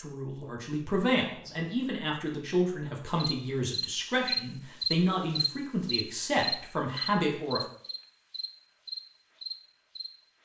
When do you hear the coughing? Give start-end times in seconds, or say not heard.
not heard.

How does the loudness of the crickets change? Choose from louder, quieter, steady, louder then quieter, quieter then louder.
quieter then louder.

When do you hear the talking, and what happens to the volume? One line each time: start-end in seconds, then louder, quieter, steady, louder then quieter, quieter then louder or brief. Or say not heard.
0.0-7.6 steady.